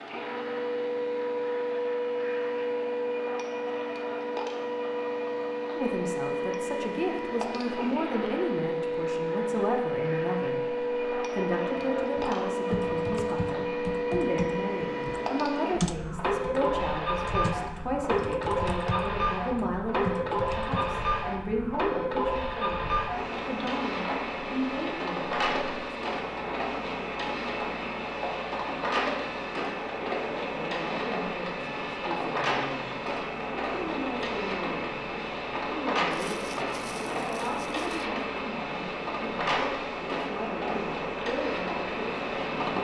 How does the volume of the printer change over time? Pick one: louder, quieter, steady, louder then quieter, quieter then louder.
steady.